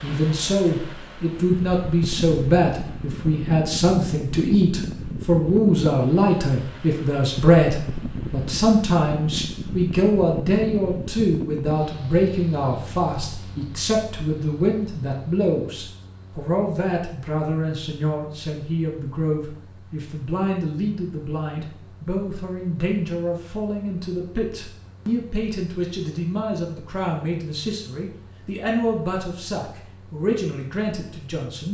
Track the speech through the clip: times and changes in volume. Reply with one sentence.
You can hear the speech from 0.0 to 31.6 s, getting quieter.